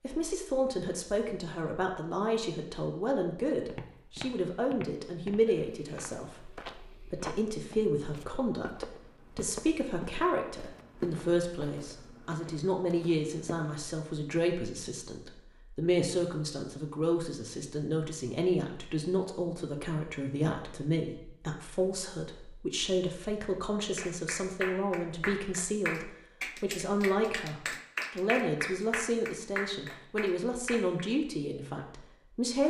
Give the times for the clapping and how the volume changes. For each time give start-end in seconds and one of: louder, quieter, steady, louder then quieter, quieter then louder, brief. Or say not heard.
23.9-31.1 steady.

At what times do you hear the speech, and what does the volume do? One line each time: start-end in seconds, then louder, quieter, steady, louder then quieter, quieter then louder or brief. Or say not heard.
0.0-32.6 steady.